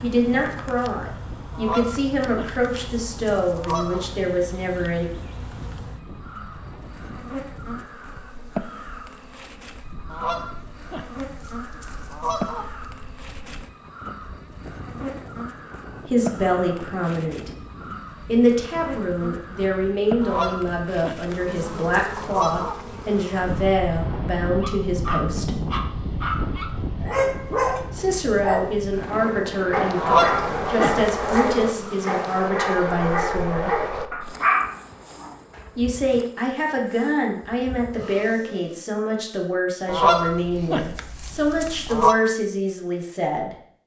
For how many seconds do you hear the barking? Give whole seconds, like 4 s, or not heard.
11 s.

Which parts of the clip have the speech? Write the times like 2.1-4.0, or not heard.
0.0-5.1, 16.1-17.5, 18.2-25.6, 27.9-33.7, 35.8-43.5.